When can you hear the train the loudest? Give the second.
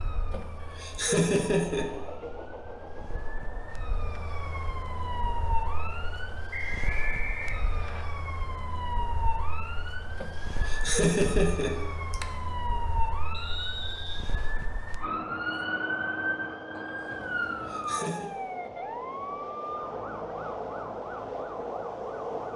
22 s.